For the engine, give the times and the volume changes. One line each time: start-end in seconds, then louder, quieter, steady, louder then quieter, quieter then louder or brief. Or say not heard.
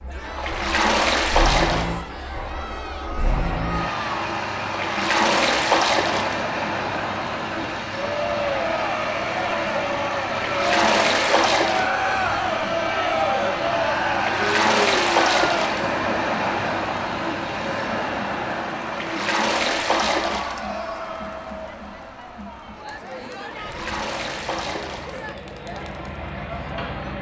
0.0-27.1 quieter.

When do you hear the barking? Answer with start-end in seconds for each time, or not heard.
not heard.